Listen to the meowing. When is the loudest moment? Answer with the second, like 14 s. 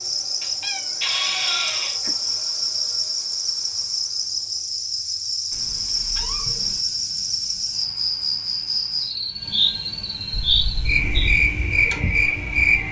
1 s.